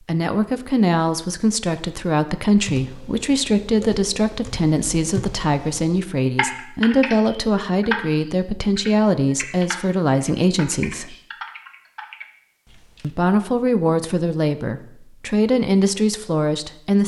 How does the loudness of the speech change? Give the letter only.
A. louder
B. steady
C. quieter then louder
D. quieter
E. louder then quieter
B.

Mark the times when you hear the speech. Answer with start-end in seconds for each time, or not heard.
0.0-11.2, 13.0-17.0.